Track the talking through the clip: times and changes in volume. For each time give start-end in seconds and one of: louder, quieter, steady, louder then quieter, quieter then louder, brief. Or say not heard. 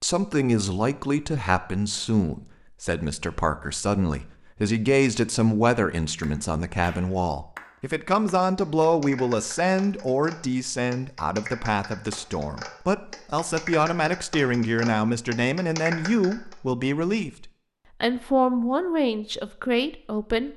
0.0-20.5 steady.